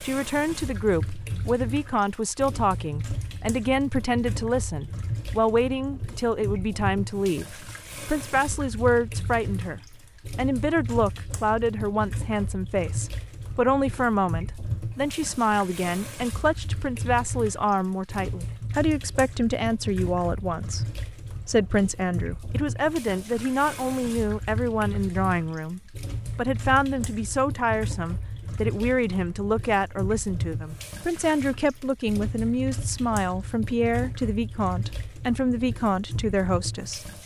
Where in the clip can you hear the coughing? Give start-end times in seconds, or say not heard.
not heard.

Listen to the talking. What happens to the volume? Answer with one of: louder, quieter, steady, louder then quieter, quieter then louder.
steady.